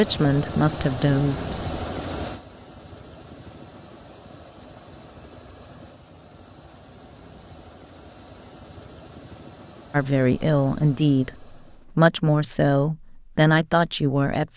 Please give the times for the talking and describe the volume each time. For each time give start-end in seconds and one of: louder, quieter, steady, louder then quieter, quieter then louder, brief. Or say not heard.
0.0-1.6 brief
9.9-14.5 steady.